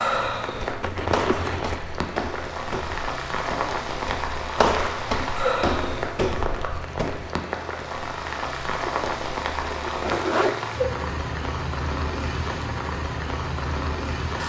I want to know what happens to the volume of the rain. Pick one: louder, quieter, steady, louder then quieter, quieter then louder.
steady.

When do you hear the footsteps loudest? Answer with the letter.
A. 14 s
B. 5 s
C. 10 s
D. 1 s
B.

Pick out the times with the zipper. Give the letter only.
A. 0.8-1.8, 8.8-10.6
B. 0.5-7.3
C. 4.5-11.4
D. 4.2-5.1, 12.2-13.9
A.